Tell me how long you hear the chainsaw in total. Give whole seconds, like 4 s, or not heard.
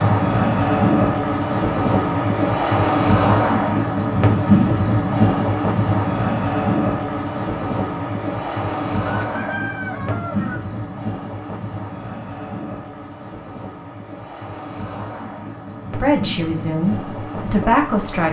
not heard.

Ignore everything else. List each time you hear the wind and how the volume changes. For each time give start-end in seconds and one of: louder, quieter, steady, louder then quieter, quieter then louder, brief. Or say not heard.
0.0-18.2 quieter.